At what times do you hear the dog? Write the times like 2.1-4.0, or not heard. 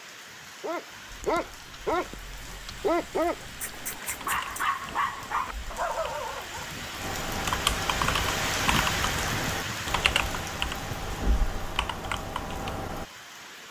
0.6-6.7.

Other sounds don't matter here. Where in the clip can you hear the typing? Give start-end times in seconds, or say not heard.
1.1-13.1.